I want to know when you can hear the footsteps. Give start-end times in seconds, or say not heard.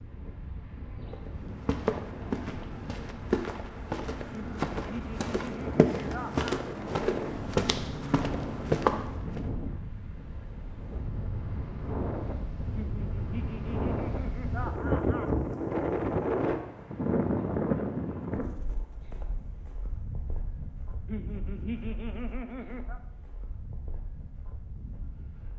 1.1-9.4.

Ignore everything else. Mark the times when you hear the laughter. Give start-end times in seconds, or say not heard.
4.3-6.5, 12.7-15.3, 21.1-23.0.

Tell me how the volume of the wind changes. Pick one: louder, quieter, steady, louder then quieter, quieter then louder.
louder then quieter.